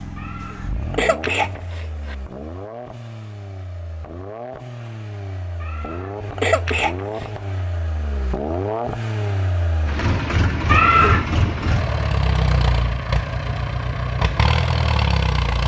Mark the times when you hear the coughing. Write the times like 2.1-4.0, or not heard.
0.1-2.1, 5.6-7.3, 10.7-11.3.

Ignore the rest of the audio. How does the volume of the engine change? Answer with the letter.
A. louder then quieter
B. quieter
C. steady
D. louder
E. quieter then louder
D.